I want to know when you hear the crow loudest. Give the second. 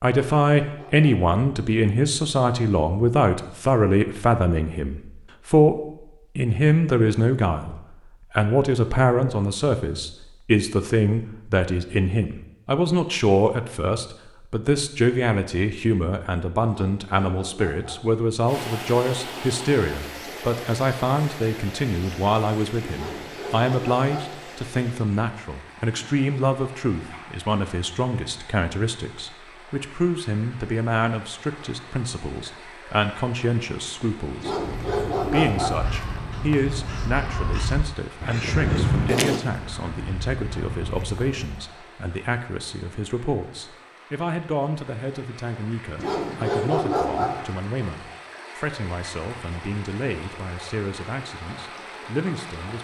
39 s.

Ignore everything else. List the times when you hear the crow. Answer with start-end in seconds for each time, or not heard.
34.5-41.7.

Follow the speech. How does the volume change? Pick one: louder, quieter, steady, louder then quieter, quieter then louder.
quieter.